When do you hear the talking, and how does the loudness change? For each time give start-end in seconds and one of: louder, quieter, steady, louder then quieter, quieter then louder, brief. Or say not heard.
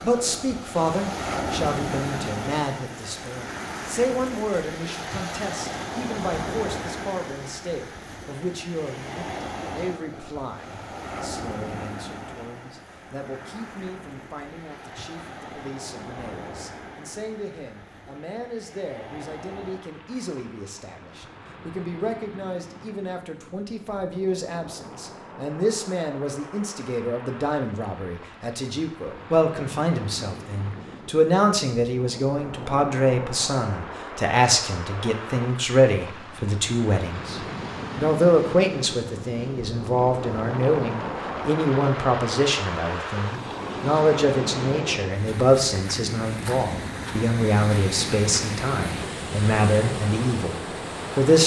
0.0-51.4 quieter then louder.